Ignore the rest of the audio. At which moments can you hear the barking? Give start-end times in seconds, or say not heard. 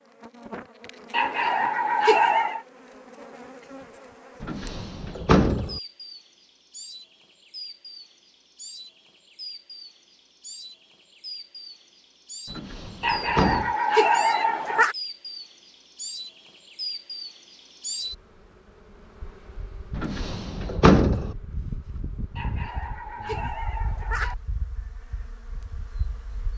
1.1-2.6, 13.0-14.9, 22.4-24.4.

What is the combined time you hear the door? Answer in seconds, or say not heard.
4 s.